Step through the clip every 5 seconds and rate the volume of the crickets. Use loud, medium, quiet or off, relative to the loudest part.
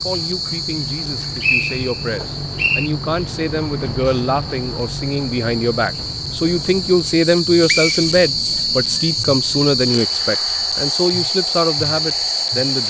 medium, loud, loud.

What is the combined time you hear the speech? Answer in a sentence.
The speech can be heard for 13 seconds in total.